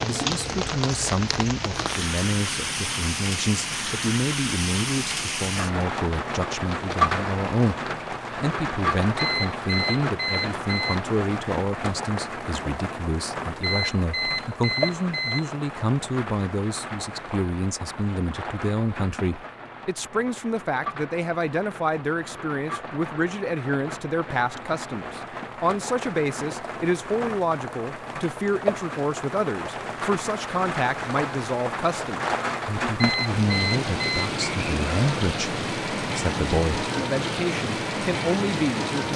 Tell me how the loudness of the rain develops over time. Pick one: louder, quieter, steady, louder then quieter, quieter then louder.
quieter then louder.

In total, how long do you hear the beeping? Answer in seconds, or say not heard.
5 s.